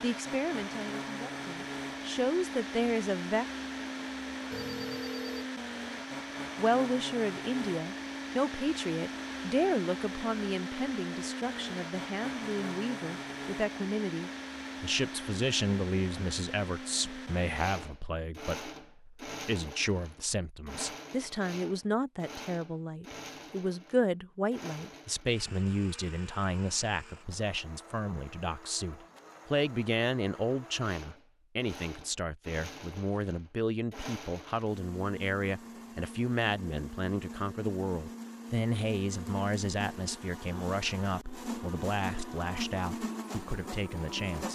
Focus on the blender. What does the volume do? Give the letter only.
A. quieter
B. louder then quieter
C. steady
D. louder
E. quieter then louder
E.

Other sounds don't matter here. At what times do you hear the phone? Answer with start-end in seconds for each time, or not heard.
4.5-5.5.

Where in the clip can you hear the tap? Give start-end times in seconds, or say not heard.
not heard.